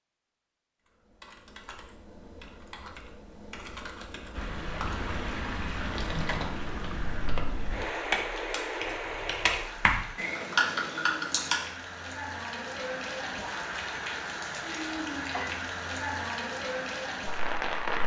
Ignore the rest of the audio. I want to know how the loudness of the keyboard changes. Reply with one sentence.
The loudness of the keyboard goes up.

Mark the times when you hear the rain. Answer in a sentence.
The rain can be heard from 4.3 to 18.0 s.